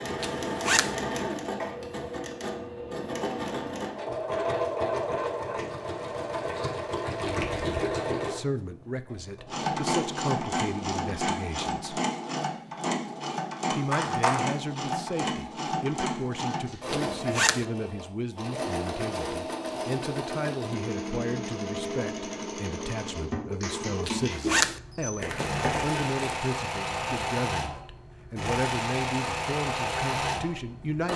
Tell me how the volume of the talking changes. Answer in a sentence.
The loudness of the talking stays about the same.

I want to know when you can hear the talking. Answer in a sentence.
The talking can be heard from 8.1 to 12.0 s and from 13.7 to 31.1 s.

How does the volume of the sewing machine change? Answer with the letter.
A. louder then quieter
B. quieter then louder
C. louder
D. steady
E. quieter
D.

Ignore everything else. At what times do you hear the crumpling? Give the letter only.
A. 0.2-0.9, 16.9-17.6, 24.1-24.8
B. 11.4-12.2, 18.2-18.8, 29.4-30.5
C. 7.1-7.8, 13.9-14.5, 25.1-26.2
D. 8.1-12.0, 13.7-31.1
C.